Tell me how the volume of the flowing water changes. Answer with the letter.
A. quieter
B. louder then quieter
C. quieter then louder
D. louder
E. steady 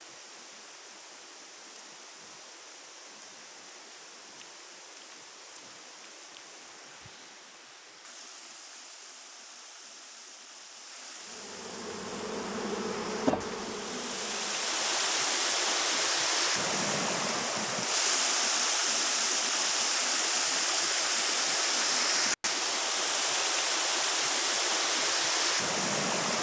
D.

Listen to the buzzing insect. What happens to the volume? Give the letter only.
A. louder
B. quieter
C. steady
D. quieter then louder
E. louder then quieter
E.